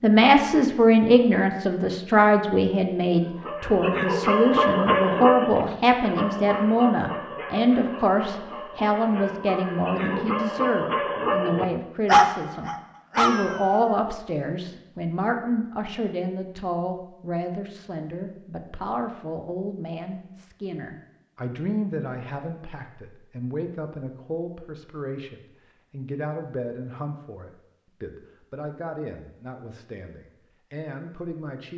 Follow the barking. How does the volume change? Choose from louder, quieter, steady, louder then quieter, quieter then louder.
quieter then louder.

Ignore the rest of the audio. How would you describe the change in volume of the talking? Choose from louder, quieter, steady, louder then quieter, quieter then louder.
quieter.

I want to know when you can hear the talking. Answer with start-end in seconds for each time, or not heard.
0.0-31.7.